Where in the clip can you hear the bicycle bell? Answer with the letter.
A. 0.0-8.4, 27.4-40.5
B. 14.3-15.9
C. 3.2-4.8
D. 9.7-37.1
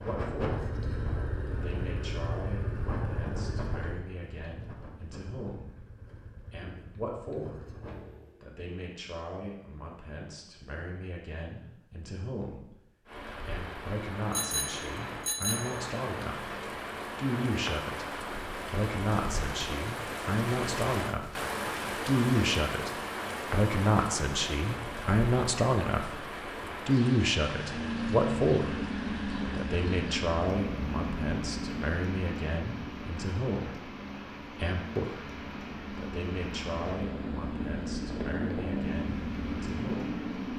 B.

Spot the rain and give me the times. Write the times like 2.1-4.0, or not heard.
13.1-40.5.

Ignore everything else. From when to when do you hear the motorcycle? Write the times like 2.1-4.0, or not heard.
0.0-8.4, 27.4-40.5.